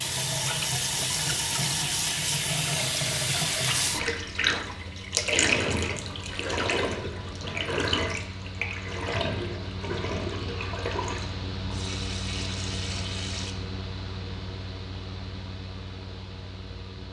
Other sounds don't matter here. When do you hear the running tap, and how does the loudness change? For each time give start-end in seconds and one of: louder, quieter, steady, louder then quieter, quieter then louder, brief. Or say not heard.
0.0-13.6 quieter.